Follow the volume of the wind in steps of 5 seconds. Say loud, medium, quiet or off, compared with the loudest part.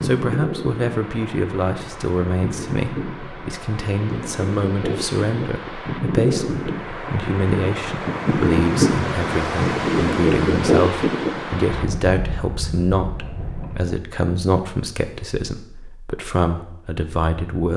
medium, loud, loud, off.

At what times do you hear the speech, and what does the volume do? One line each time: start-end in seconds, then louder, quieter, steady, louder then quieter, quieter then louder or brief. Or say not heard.
0.0-17.7 steady.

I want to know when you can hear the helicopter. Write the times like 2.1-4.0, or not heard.
not heard.